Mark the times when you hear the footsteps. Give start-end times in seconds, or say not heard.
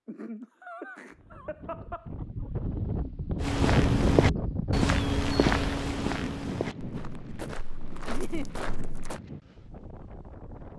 3.4-9.2.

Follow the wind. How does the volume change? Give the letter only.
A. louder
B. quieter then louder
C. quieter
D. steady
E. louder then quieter
E.